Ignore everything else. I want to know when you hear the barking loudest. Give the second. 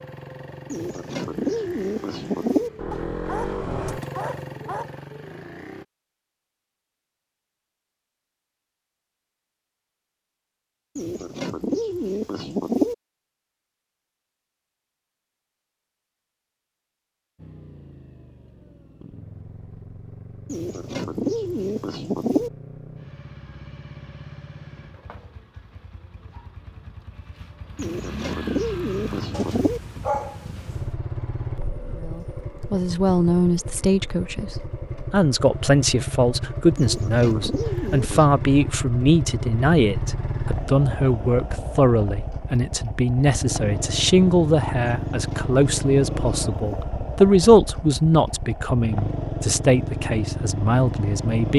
30 s.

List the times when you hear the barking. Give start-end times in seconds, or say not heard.
2.9-4.9, 29.3-30.9.